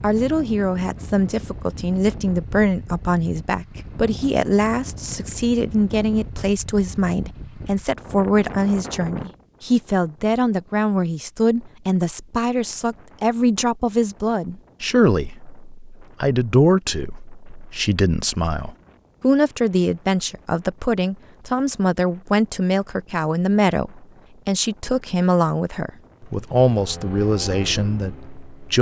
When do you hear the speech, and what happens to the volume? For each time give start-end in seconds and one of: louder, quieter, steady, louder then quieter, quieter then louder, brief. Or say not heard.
0.0-28.7 steady.